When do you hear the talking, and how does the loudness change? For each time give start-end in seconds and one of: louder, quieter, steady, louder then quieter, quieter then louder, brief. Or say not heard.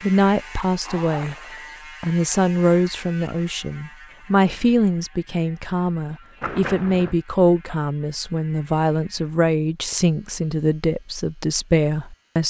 0.0-1.4 brief
2.0-12.4 steady.